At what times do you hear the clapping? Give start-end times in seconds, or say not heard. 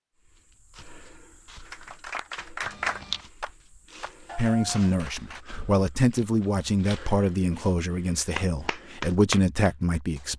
1.6-5.4, 8.3-10.3.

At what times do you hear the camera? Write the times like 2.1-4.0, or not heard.
2.4-3.2, 6.4-7.0.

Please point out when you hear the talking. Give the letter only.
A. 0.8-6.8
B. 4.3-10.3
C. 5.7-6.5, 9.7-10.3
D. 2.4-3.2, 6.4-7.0
B.